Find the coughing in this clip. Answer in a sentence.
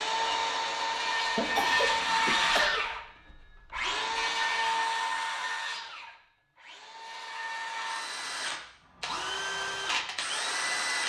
You can hear the coughing from 1.4 to 2.8 s.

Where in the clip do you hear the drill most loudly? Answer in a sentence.
The loudest moment of the drill is at 2 seconds.